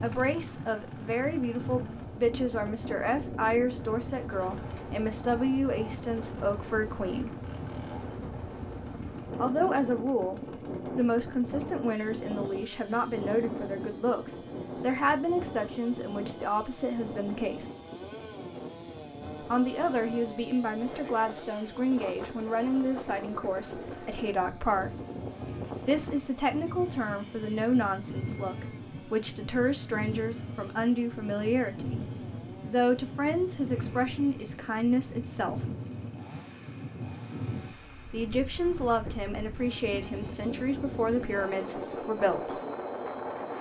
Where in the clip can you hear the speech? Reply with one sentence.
The speech can be heard from 0.0 to 7.3 s, from 9.4 to 17.7 s, from 19.4 to 24.9 s, from 25.9 to 35.6 s and from 38.1 to 42.6 s.